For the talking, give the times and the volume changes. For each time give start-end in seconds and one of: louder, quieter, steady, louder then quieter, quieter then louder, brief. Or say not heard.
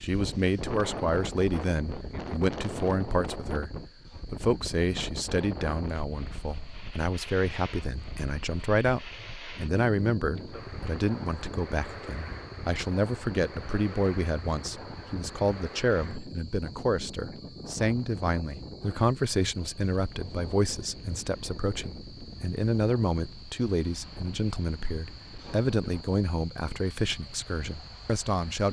0.0-28.6 steady.